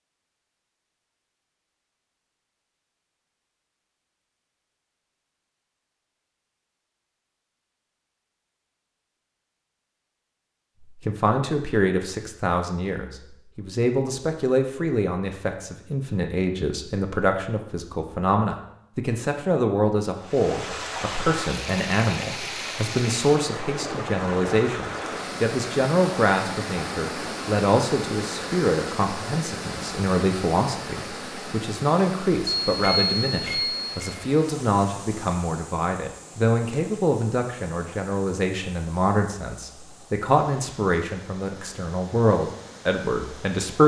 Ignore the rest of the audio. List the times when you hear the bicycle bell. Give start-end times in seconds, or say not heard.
32.6-34.1.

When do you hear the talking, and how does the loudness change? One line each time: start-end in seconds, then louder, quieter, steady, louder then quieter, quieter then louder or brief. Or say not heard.
11.0-43.8 steady.